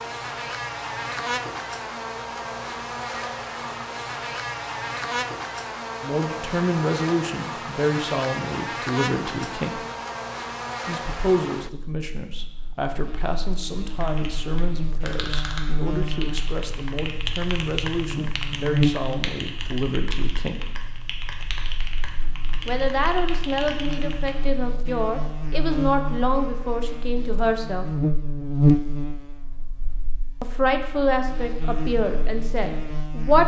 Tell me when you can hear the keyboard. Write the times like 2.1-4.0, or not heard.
13.8-24.4.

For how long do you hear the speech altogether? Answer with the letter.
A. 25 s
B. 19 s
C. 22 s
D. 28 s
C.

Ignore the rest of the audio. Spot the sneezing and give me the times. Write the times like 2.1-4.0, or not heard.
not heard.